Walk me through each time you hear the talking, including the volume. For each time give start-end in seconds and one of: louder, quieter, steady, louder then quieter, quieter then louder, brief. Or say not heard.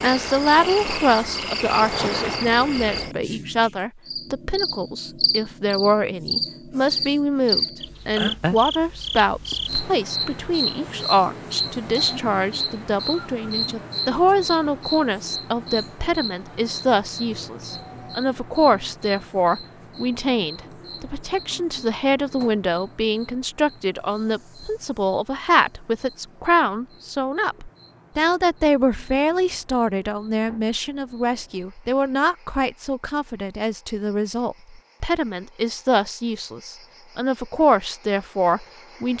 0.0-39.1 steady.